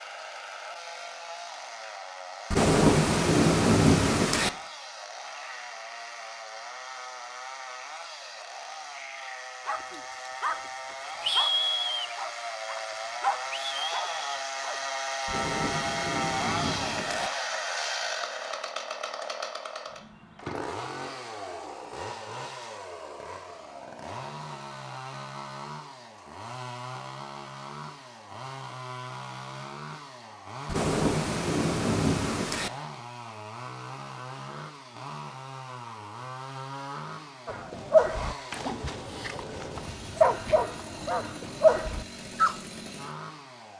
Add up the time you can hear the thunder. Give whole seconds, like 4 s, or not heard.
6 s.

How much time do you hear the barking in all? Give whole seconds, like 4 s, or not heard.
10 s.